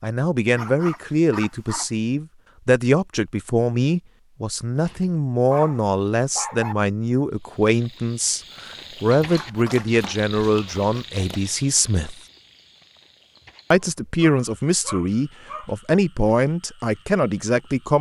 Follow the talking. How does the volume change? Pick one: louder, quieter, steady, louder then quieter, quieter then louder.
steady.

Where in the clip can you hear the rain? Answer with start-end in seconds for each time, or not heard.
not heard.